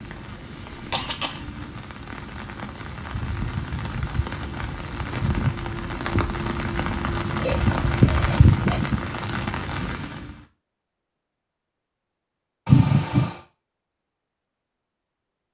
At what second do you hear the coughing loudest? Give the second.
13 s.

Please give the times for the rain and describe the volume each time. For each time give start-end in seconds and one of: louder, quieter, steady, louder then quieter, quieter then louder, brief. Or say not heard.
0.0-10.4 louder.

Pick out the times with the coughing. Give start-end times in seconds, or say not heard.
0.7-1.5, 7.3-8.8, 12.7-13.3.